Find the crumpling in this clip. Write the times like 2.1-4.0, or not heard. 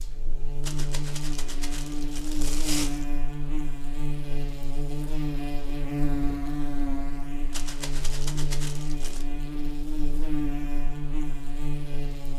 0.6-3.0, 7.5-9.2.